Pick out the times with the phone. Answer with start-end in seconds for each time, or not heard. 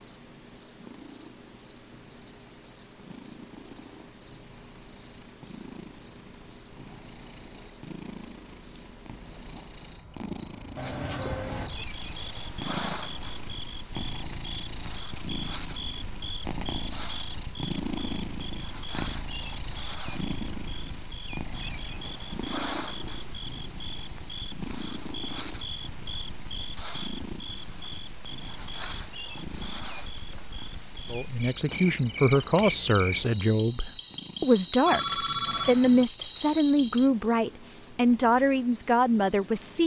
10.8-11.7, 34.9-36.0.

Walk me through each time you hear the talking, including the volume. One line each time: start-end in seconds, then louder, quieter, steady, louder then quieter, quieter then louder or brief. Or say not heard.
31.1-39.8 steady.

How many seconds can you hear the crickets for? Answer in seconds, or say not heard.
40 s.